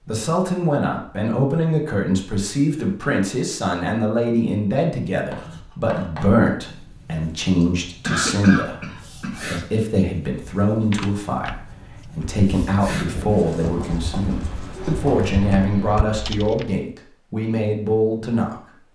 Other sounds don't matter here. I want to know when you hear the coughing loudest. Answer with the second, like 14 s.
8 s.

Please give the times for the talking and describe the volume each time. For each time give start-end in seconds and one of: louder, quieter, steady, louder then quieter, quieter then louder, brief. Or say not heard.
0.1-18.6 steady.